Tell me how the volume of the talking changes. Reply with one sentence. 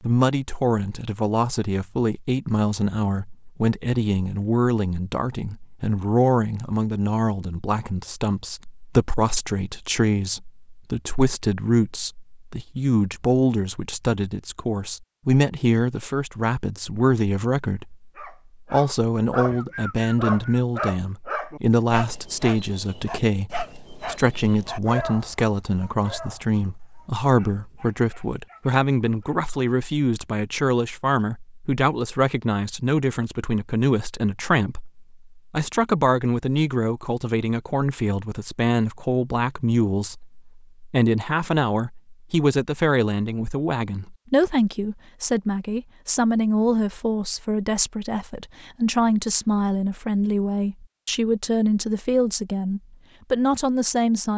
The volume of the talking stays about the same.